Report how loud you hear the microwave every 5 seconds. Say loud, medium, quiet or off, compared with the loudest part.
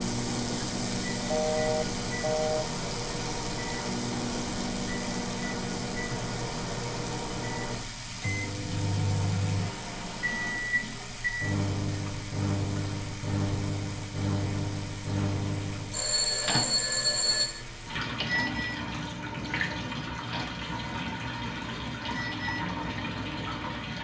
loud, loud, loud, loud, medium.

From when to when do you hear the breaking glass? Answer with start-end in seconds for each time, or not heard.
not heard.